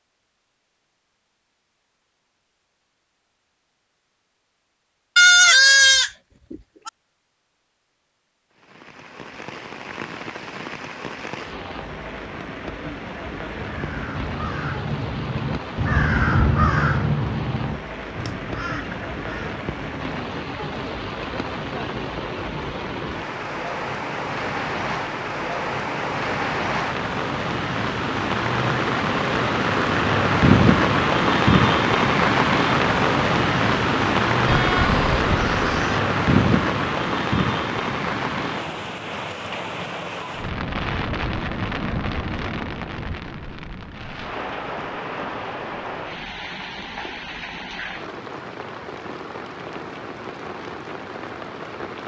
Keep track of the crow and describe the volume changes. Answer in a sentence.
The volume of the crow goes up, then down.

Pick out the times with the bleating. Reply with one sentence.
The bleating can be heard from 5.2 to 6.9 s and from 34.5 to 36.0 s.